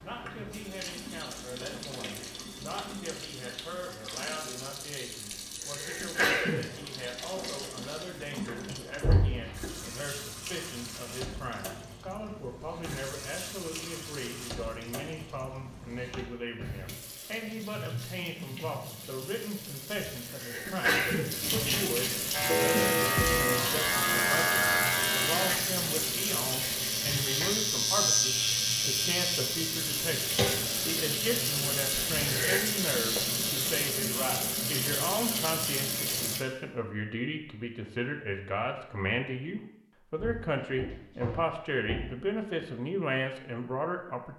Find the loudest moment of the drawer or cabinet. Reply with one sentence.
The volume of the drawer or cabinet peaks at 9 seconds.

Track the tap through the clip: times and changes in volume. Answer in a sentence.
You can hear the tap from 0.0 to 36.5 s, getting louder.